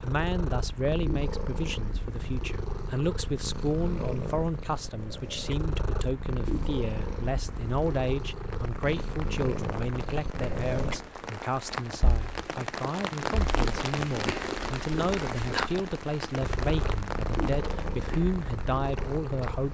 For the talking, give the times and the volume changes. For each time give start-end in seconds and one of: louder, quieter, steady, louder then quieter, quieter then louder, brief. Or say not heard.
0.0-19.6 steady.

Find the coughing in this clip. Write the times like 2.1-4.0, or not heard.
not heard.